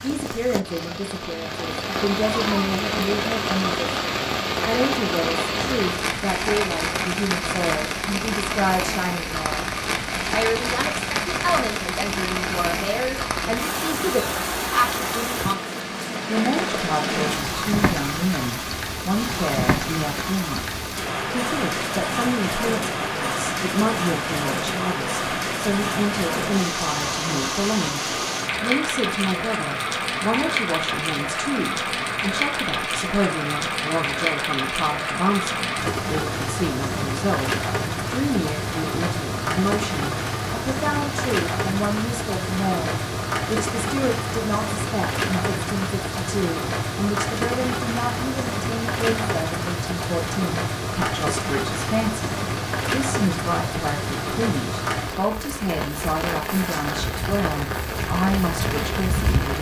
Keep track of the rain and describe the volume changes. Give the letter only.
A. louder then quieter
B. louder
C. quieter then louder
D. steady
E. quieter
D.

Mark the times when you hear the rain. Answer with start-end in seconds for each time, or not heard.
0.0-59.5.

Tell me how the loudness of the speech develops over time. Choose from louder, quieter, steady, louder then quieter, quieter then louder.
steady.